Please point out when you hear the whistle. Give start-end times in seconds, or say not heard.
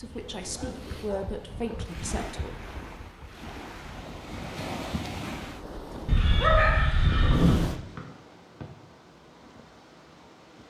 8.0-8.7.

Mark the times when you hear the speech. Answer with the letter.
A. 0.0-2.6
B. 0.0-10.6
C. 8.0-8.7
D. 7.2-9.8
A.